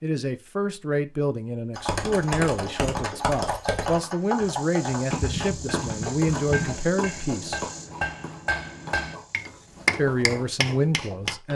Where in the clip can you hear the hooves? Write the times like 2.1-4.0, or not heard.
1.8-11.3.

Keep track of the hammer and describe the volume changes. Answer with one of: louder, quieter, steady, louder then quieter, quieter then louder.
louder.